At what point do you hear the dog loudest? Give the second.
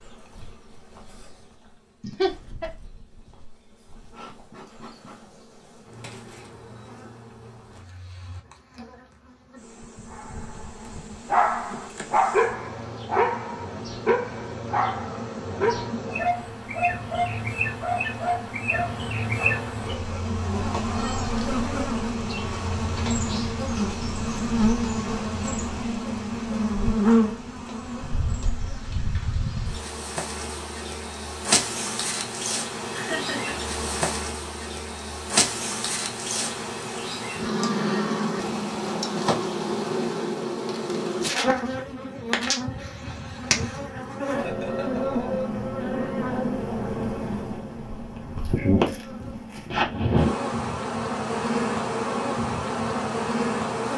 12 s.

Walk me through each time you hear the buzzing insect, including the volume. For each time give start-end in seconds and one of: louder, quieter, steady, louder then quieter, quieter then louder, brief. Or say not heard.
0.0-53.9 louder.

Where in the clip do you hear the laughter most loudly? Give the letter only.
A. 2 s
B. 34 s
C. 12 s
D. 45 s
A.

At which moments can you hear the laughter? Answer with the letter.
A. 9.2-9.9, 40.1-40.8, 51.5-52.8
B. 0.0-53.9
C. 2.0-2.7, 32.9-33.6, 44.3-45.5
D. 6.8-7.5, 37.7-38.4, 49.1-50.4
C.